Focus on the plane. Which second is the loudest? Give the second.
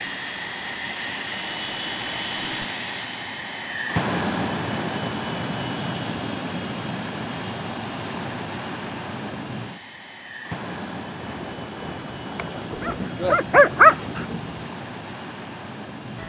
4 s.